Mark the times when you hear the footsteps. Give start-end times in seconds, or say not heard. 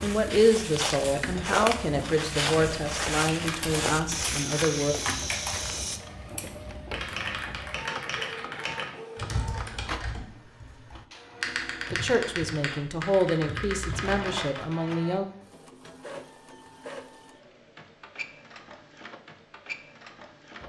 0.0-6.0.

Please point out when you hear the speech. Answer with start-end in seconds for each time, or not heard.
0.0-5.0, 11.9-15.2.